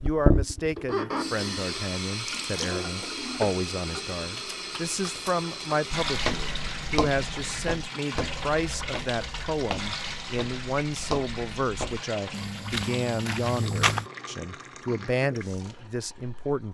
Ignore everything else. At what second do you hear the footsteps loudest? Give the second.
14 s.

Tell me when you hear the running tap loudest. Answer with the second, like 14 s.
1 s.